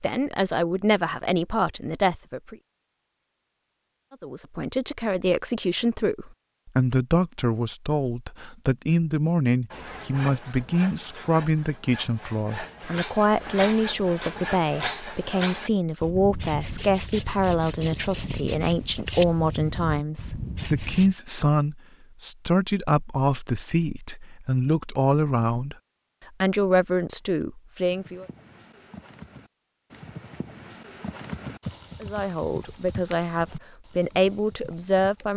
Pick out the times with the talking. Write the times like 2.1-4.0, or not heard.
0.0-2.5, 4.1-25.8, 26.4-28.2, 32.0-35.3.